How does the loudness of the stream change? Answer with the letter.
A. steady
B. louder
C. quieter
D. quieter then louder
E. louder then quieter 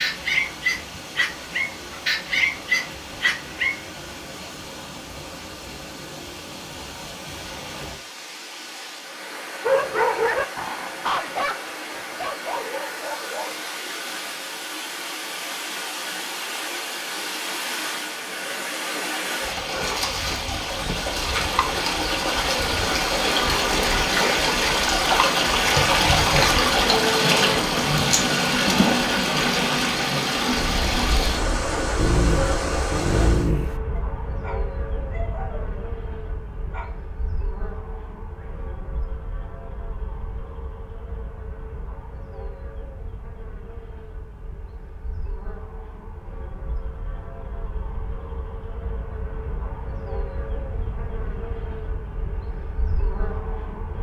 B.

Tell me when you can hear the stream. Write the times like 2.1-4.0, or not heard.
0.0-33.5.